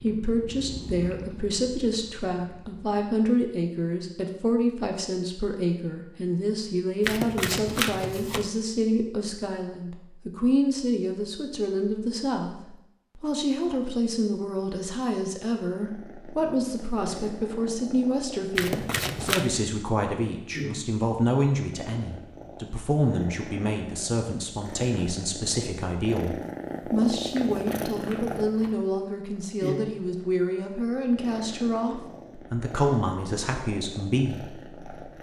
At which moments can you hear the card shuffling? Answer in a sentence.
You can hear the card shuffling from 7.0 to 8.5 s, from 18.6 to 19.5 s and from 27.3 to 28.8 s.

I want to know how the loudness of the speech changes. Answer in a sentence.
The loudness of the speech stays about the same.